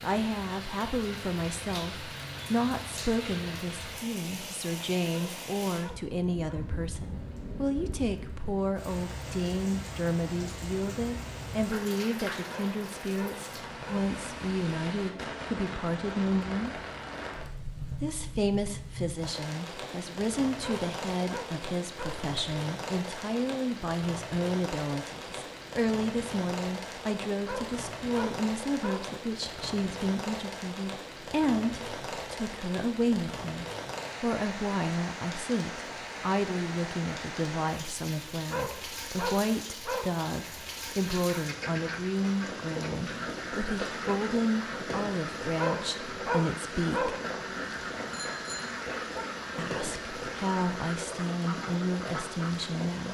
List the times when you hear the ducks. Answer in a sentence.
The ducks can be heard from 41.0 to 52.6 s.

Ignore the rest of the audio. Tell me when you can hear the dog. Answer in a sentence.
You can hear the dog from 5.1 to 6.7 s, from 12.4 to 14.1 s, from 20.6 to 22.2 s, from 27.4 to 29.1 s, from 38.5 to 40.1 s and from 45.5 to 47.2 s.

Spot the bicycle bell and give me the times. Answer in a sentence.
You can hear the bicycle bell from 48.1 to 49.2 s.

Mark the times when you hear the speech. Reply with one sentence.
You can hear the speech from 0.0 to 16.8 s, from 18.0 to 47.1 s and from 49.5 to 53.0 s.